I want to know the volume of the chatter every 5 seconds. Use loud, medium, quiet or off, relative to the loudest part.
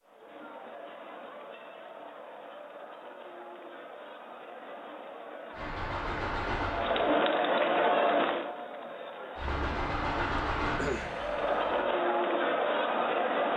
quiet, loud, loud.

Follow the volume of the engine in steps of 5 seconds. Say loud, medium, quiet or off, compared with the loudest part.
off, loud, loud.